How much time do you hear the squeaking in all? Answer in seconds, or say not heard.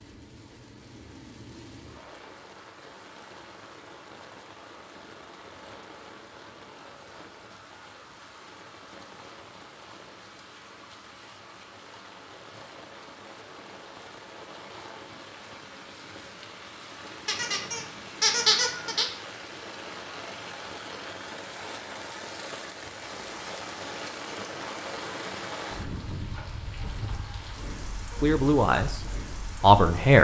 2 s.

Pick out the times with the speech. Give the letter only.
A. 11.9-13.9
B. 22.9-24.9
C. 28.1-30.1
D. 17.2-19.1
C.